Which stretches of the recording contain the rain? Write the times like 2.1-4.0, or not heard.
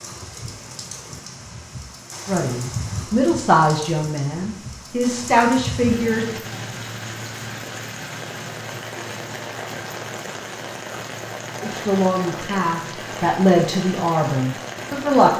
0.0-15.3.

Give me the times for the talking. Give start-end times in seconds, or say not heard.
2.2-6.4, 11.6-15.3.